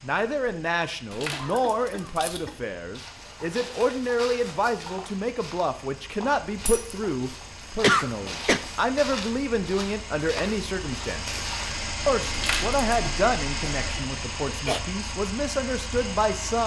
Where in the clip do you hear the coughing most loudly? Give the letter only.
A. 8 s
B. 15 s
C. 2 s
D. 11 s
A.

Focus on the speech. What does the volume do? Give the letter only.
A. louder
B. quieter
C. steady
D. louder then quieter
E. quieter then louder
C.